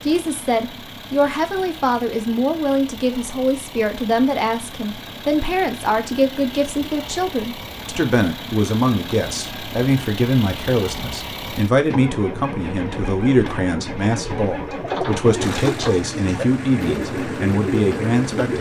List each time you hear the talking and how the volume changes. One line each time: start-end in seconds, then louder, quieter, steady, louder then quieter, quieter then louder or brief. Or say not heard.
0.1-18.5 steady.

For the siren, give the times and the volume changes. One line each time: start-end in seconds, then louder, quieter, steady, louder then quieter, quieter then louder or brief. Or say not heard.
not heard.